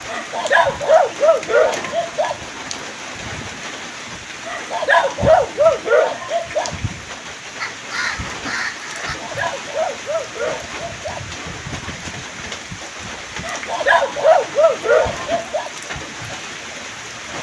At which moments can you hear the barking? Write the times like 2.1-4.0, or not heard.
0.1-2.4, 4.5-6.7, 9.1-11.2, 13.4-15.7.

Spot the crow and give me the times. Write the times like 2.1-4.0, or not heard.
7.6-9.2.